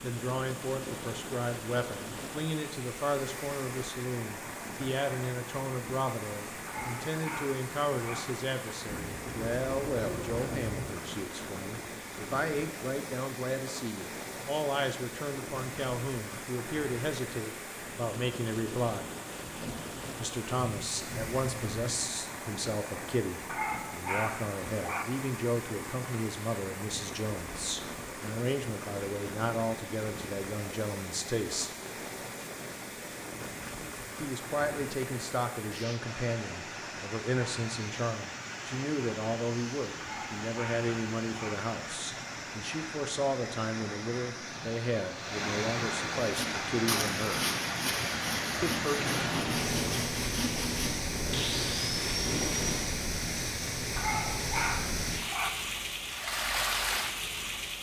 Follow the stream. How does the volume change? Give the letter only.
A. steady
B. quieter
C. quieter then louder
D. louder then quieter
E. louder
E.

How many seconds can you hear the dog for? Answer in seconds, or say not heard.
6 s.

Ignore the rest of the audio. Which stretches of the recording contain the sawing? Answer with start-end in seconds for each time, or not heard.
46.2-52.8.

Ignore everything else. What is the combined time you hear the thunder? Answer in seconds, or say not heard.
9 s.